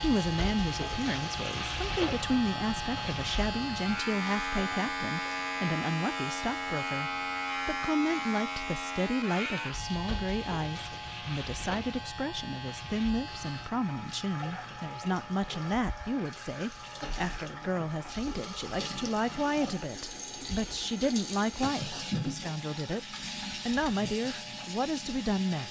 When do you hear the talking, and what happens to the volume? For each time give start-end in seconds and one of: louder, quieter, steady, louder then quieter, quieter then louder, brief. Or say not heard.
0.0-25.6 steady.